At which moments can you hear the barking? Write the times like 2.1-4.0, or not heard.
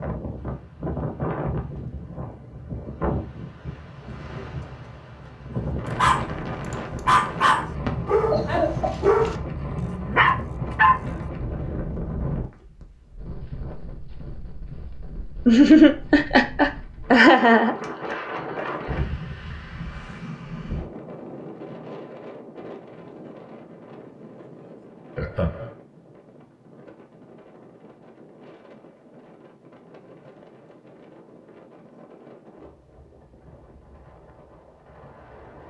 6.0-11.2.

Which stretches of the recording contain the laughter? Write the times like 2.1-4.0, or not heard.
7.8-8.9, 15.4-17.8, 25.1-25.7.